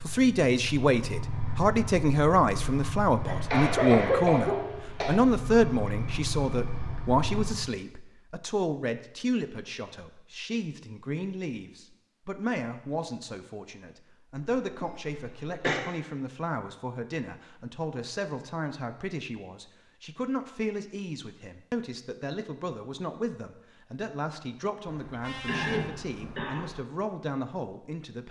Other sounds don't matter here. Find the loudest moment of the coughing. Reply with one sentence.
The volume of the coughing peaks at 4 seconds.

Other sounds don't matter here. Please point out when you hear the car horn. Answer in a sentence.
The car horn can be heard from 24.9 to 26.6 s.